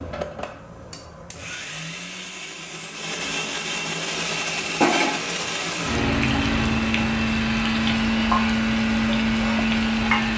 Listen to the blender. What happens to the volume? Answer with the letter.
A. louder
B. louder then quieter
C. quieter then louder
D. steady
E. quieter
A.